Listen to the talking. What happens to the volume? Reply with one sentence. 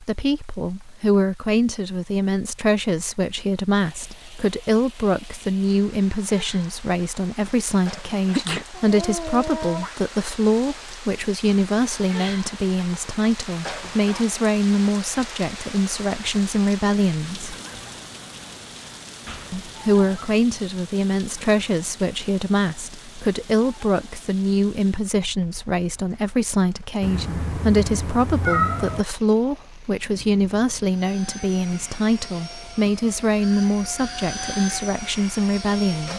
The loudness of the talking stays about the same.